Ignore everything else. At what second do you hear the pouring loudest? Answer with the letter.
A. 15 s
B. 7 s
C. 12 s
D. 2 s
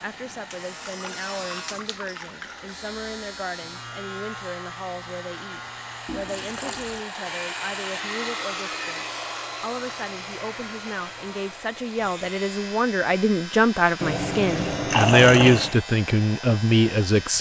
A.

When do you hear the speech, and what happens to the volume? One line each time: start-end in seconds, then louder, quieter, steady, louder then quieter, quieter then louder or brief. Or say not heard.
0.0-17.3 louder.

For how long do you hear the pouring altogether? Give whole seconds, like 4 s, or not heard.
5 s.